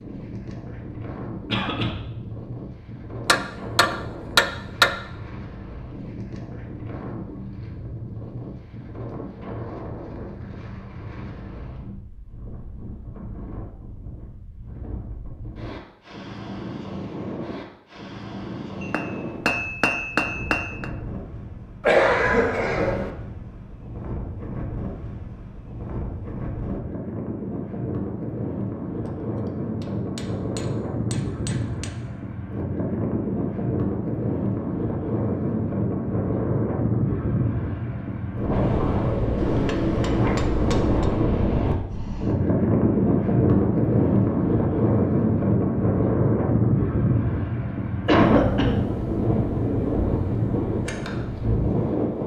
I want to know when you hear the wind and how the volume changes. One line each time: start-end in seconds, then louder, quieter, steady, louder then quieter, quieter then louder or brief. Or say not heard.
0.0-52.2 louder.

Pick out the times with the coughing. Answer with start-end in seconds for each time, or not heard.
1.4-1.9, 21.8-23.1, 48.0-48.8.